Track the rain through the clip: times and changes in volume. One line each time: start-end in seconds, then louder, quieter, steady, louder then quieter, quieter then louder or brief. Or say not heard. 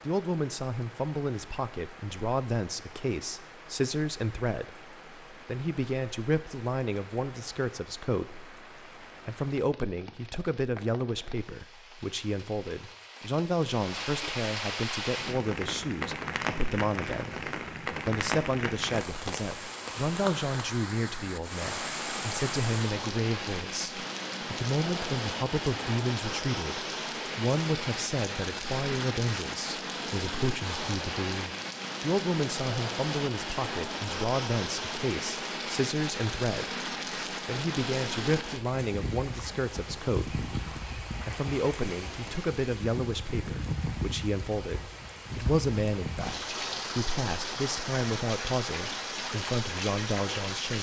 0.0-50.7 louder.